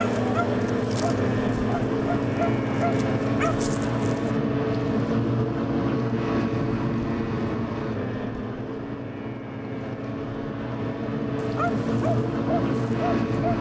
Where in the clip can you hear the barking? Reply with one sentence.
You can hear the barking from 0.0 to 4.3 s and from 11.4 to 13.5 s.